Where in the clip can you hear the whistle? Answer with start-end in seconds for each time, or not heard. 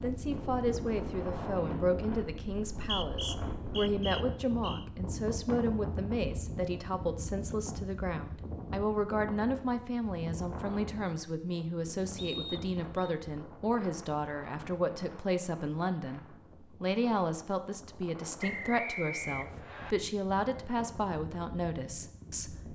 2.8-4.8, 12.2-13.2, 18.4-19.9.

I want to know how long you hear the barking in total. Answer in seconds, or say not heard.
not heard.